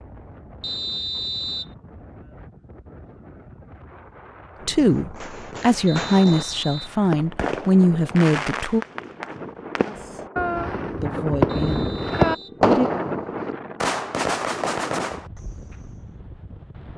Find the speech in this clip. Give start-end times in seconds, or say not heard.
4.7-8.8, 11.0-12.9.